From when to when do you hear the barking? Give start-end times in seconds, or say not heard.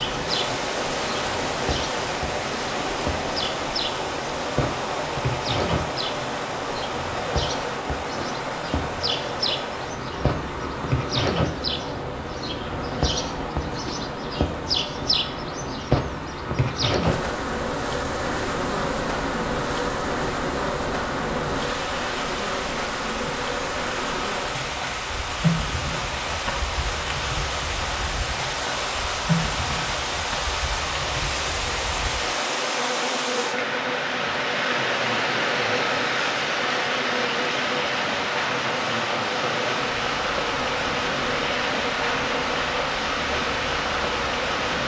not heard.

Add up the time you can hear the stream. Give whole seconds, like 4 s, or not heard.
45 s.